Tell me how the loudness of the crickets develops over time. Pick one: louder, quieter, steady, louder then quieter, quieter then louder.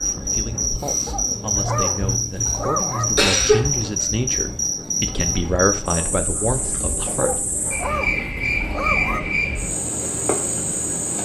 steady.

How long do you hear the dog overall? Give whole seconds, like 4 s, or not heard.
4 s.